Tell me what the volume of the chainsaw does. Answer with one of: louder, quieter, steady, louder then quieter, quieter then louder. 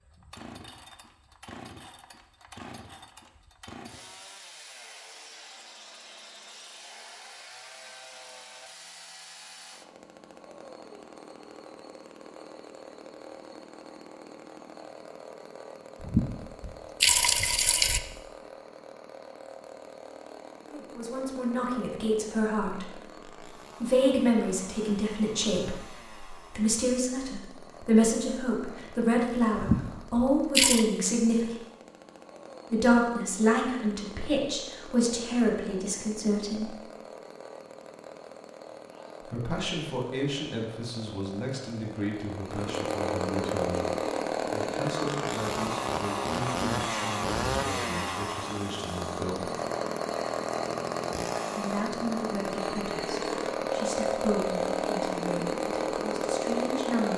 louder.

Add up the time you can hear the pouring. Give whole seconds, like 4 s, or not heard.
3 s.